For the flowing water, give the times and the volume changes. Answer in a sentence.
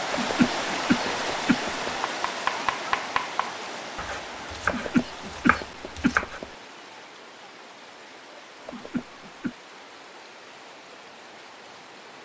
You can hear the flowing water from 0.0 to 12.2 s, getting quieter.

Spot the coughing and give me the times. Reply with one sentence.
The coughing can be heard from 0.1 to 1.9 s, from 4.7 to 6.5 s and from 8.7 to 9.6 s.